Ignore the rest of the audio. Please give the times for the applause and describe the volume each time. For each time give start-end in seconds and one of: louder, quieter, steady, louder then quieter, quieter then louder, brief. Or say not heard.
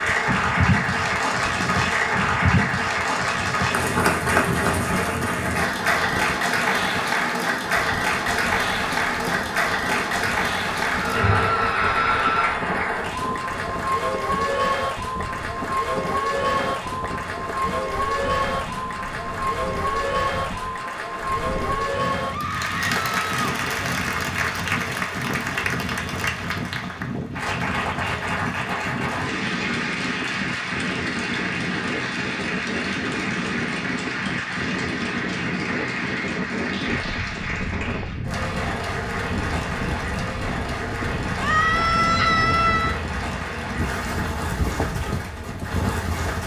0.0-46.4 quieter.